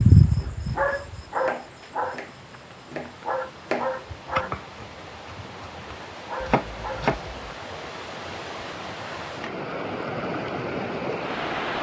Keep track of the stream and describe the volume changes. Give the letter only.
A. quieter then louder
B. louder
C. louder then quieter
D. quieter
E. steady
B.